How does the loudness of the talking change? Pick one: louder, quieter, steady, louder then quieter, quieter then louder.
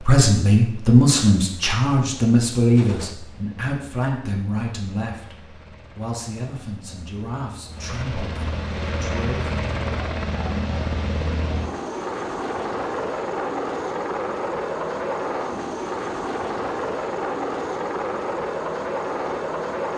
quieter.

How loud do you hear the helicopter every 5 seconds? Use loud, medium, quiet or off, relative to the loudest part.
quiet, medium, loud, loud.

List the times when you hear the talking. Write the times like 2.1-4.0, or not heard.
0.0-9.6.